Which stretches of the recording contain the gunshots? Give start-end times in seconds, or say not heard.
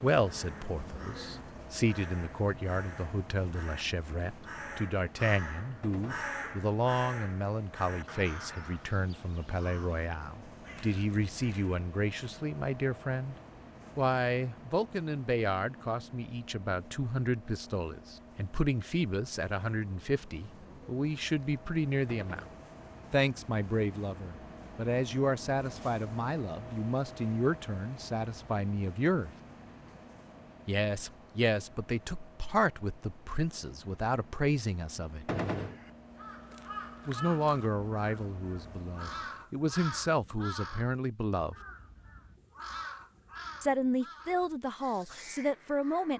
5.8-6.3, 22.1-22.6, 35.2-35.8.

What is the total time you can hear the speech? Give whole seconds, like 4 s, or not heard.
40 s.